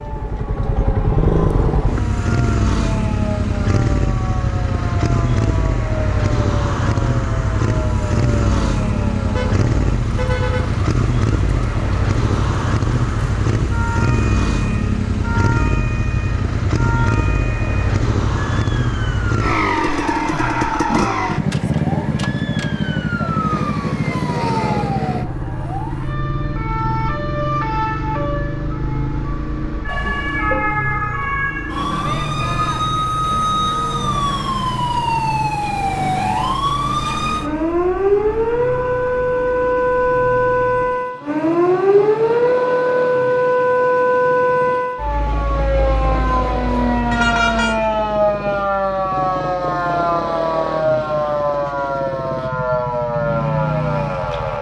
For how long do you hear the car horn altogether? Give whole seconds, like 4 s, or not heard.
3 s.